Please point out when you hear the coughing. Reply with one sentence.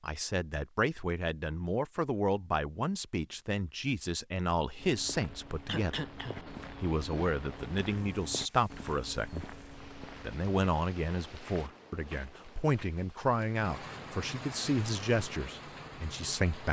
The coughing can be heard from 5.7 to 6.6 s.